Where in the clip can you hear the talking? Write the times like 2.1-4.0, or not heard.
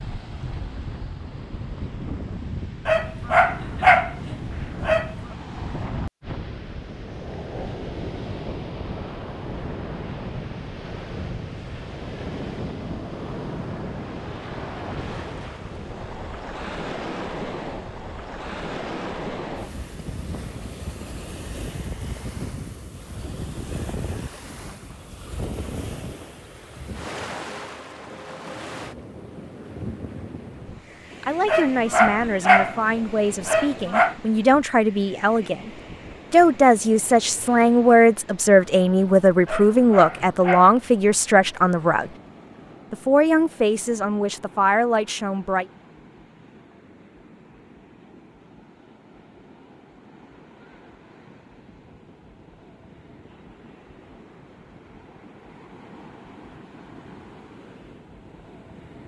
31.2-35.7, 36.3-42.1, 42.9-45.6.